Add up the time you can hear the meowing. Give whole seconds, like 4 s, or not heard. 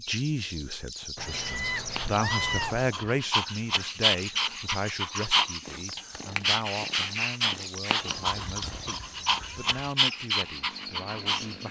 4 s.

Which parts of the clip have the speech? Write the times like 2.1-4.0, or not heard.
0.0-11.6.